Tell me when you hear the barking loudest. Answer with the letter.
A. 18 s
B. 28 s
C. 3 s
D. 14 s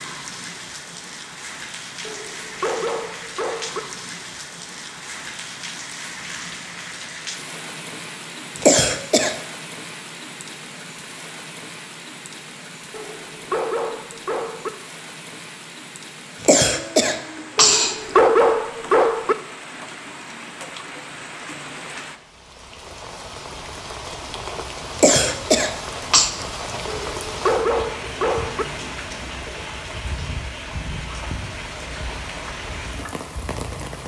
A.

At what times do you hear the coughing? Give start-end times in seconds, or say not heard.
8.6-9.3, 16.4-18.2, 24.9-26.3.